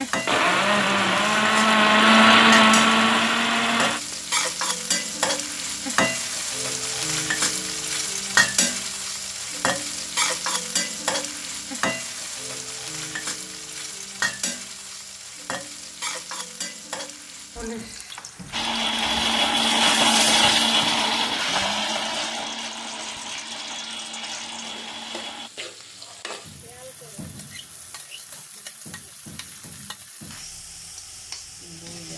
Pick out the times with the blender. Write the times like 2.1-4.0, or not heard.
0.2-4.2, 18.5-25.5.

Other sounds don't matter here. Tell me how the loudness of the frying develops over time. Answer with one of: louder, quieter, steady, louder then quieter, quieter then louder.
quieter.